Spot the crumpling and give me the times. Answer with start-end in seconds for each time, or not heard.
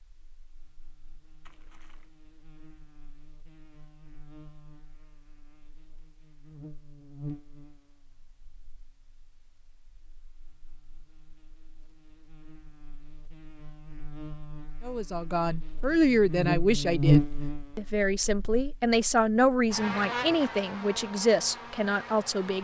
1.4-2.1.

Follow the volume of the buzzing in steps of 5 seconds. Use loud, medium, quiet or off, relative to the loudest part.
quiet, quiet, quiet, loud, medium.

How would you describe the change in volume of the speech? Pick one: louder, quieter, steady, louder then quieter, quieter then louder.
steady.